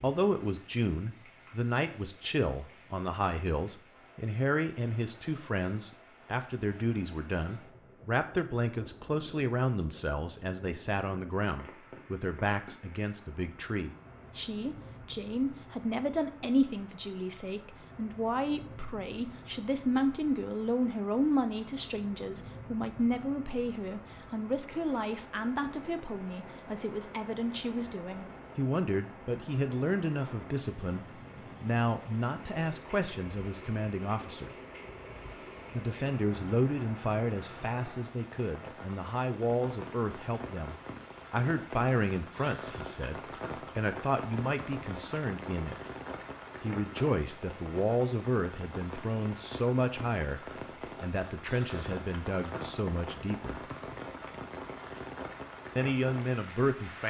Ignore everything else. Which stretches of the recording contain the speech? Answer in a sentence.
You can hear the speech from 0.0 to 34.5 s, from 35.7 to 45.8 s, from 46.6 to 53.6 s and from 55.8 to 57.0 s.